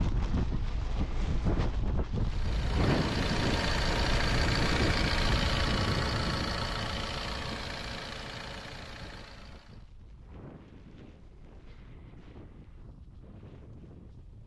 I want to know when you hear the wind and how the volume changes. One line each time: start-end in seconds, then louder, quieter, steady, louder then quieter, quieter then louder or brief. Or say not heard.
0.0-14.4 quieter.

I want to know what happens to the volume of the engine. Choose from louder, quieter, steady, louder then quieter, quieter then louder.
quieter.